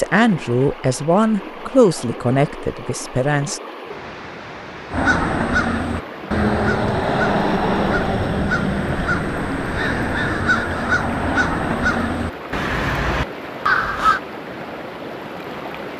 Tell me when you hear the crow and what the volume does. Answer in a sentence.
You can hear the crow from 4.9 to 14.2 s, at a steady volume.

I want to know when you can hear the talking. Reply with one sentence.
You can hear the talking from 0.0 to 3.6 s.